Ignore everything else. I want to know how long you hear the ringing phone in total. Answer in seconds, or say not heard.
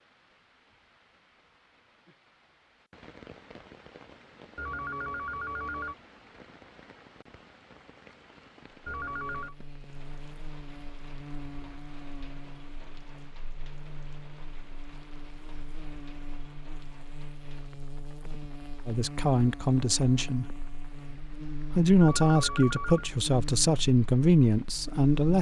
3 s.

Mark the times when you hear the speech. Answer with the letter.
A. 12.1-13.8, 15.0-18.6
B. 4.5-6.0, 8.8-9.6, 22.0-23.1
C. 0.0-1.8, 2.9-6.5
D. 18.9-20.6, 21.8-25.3
D.